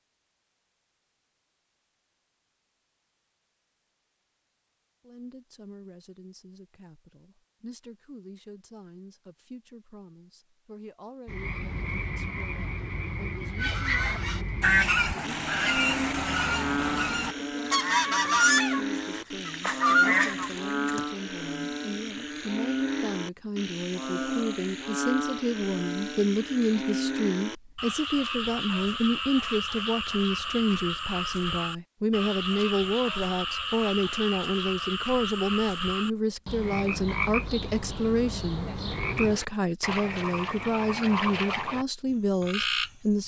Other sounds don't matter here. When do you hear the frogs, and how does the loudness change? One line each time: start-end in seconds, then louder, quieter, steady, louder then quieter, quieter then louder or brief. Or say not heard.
11.2-43.2 steady.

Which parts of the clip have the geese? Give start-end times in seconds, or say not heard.
13.6-21.1.